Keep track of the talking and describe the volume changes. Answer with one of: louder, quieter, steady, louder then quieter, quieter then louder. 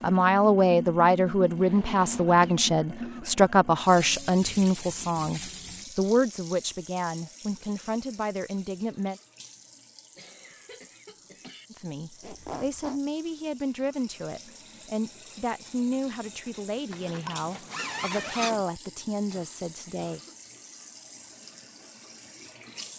quieter.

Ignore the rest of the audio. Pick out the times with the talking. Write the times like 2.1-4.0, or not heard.
0.0-9.2, 11.7-20.2.